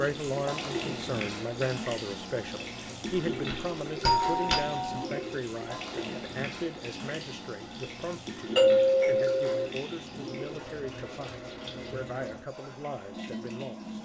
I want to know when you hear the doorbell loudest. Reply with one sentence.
The volume of the doorbell peaks at 9 seconds.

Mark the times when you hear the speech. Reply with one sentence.
You can hear the speech from 0.0 to 14.0 s.